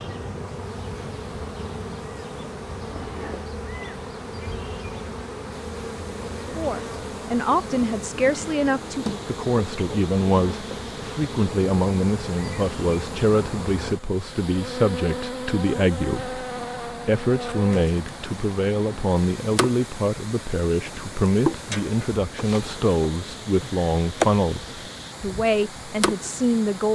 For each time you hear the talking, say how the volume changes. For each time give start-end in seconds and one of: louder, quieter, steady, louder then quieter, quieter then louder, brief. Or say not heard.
6.5-26.9 steady.